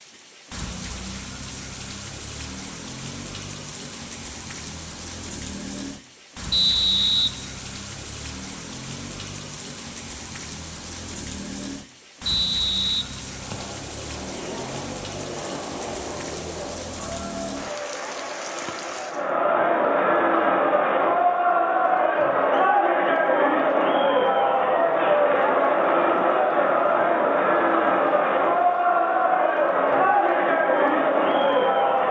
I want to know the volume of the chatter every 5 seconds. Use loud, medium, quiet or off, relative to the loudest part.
off, off, quiet, medium, loud, loud, loud.